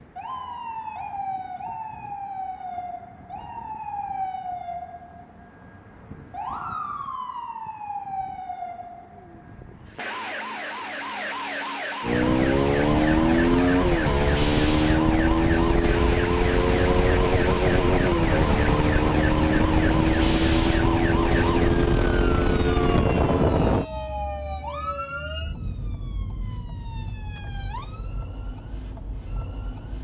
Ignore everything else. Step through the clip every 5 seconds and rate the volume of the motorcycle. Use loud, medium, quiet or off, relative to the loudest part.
off, off, loud, loud, loud, off.